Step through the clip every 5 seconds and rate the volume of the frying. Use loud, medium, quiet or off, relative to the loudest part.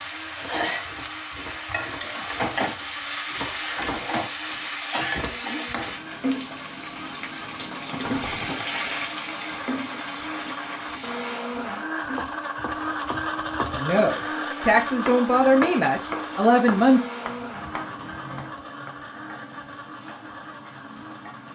loud, loud, medium, quiet, quiet.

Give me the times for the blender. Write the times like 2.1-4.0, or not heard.
0.0-21.4.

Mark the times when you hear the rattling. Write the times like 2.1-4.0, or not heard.
7.9-8.7.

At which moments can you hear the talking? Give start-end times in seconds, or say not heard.
13.8-17.1.